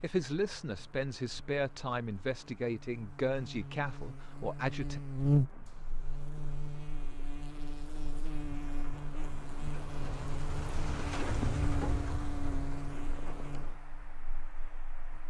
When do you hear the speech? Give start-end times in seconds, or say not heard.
0.0-5.0.